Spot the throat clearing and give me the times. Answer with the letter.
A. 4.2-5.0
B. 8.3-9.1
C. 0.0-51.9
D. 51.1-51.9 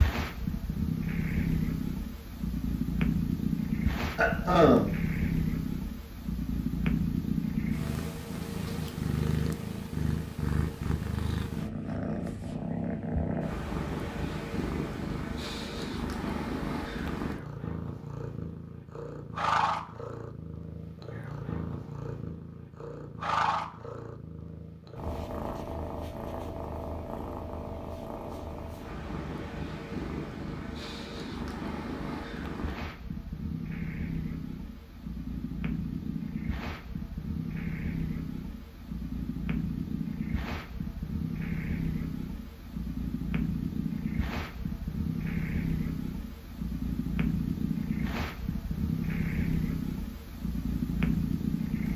A.